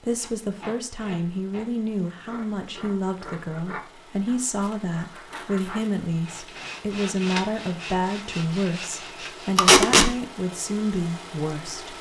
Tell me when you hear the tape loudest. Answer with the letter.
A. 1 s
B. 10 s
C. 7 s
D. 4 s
B.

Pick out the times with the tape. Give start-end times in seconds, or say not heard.
0.1-1.6, 4.5-6.5, 9.6-10.1.